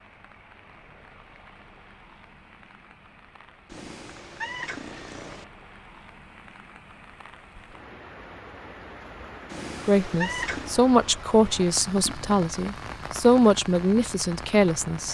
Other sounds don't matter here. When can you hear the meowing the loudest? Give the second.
10 s.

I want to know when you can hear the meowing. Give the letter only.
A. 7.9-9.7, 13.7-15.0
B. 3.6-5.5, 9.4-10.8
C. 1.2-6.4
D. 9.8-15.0
B.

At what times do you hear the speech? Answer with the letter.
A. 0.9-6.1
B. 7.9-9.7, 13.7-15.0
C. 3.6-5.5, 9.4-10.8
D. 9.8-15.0
D.